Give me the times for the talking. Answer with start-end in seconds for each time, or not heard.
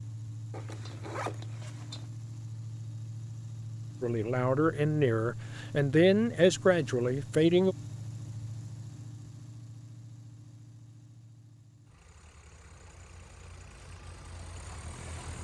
4.0-7.8.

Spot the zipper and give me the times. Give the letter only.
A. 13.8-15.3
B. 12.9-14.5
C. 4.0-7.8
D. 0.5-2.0
D.